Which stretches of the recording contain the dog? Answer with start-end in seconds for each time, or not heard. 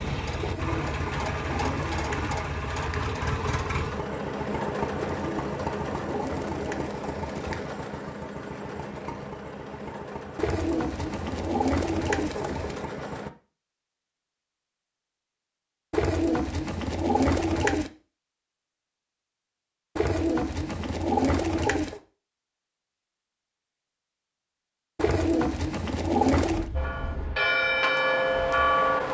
not heard.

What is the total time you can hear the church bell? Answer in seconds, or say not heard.
2 s.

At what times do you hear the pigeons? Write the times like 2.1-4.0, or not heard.
0.3-3.1, 5.0-7.8, 10.3-12.8, 15.9-17.9, 19.9-22.0, 24.9-26.7.